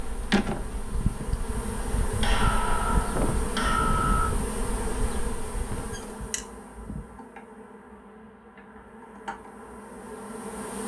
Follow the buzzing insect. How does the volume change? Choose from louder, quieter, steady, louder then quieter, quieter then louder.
quieter.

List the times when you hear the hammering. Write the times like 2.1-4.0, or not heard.
2.0-4.3.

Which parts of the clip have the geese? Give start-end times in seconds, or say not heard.
not heard.